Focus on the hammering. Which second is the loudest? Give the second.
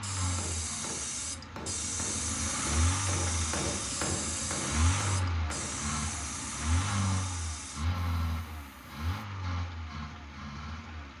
4 s.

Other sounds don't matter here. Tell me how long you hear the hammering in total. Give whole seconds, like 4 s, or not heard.
6 s.